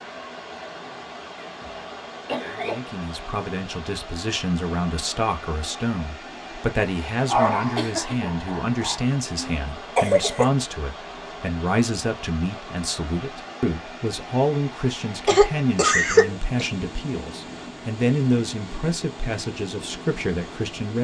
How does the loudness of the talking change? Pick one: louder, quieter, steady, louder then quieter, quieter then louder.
steady.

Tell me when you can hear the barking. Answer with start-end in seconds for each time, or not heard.
7.2-9.0.